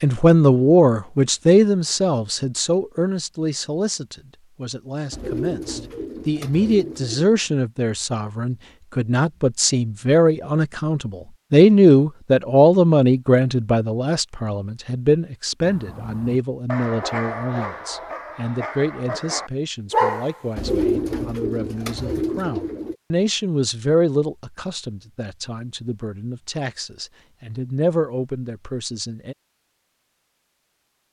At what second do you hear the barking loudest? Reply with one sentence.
The volume of the barking peaks at 20 seconds.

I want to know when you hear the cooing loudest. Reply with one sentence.
The loudest moment of the cooing is at 21 seconds.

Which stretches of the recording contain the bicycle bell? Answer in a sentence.
You can't hear the bicycle bell here.